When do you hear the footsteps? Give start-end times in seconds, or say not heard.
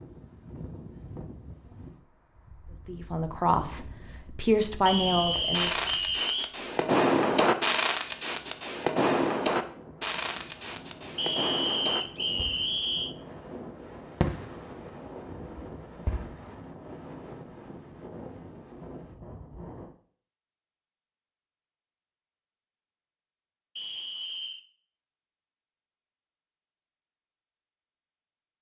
not heard.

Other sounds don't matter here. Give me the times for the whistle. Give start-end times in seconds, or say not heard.
4.8-6.5, 11.2-13.2, 23.8-24.6.